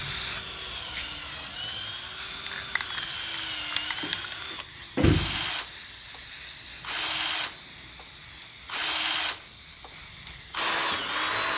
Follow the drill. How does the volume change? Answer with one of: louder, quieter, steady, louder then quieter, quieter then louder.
louder.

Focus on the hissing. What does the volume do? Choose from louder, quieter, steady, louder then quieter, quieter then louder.
louder then quieter.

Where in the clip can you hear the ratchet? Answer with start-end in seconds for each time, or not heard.
not heard.